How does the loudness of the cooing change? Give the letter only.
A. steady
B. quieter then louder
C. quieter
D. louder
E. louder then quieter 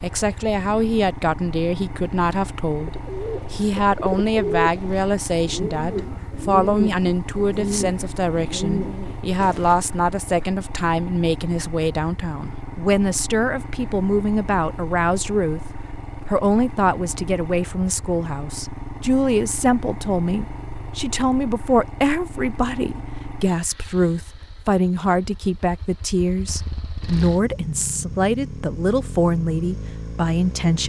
A.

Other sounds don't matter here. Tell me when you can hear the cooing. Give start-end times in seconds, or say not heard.
2.8-9.8.